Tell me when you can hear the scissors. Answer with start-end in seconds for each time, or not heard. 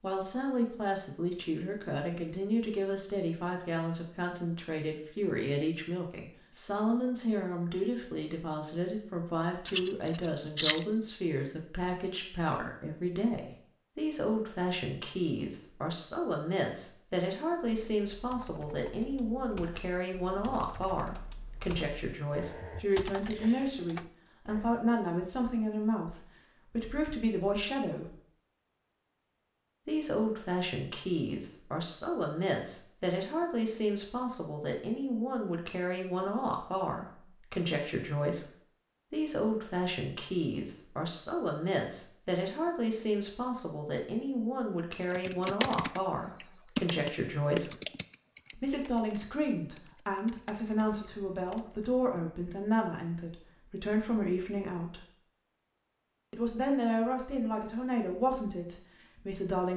9.7-10.8.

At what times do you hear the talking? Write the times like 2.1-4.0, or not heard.
0.0-28.1, 29.9-38.5, 39.1-47.8, 48.5-55.0, 56.3-59.7.